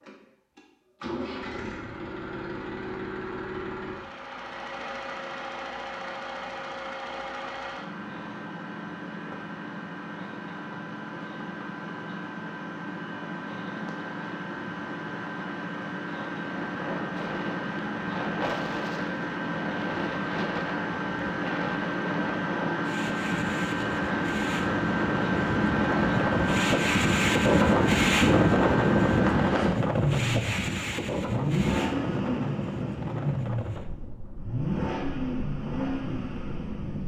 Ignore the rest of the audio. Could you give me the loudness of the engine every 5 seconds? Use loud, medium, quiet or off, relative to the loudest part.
medium, medium, medium, medium, loud, loud, loud, medium.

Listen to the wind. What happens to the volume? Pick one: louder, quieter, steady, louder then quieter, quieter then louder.
louder then quieter.